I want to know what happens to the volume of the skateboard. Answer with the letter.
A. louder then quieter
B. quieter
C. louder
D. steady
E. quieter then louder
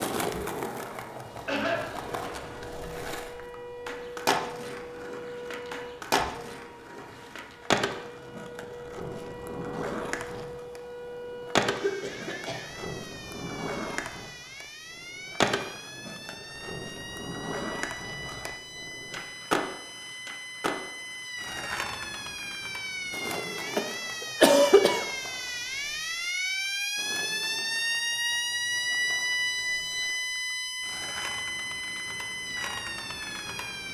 B.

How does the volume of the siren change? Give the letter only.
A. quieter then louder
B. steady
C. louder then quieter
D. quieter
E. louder
E.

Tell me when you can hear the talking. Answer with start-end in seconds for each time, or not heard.
not heard.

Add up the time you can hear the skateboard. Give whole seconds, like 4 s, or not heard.
34 s.